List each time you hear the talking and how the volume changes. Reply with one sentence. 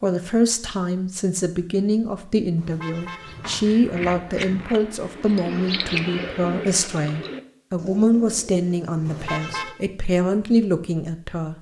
You can hear the talking from 0.0 to 11.5 s, at a steady volume.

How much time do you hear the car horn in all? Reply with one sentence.
You can hear the car horn for 2 seconds altogether.